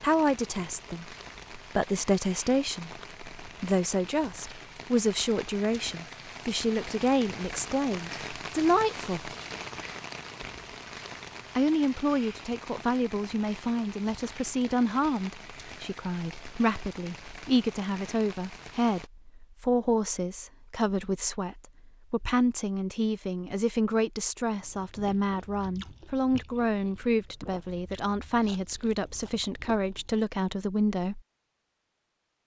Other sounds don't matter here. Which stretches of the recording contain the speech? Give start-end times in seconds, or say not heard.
0.0-9.3, 11.6-31.2.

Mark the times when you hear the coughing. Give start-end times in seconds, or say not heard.
not heard.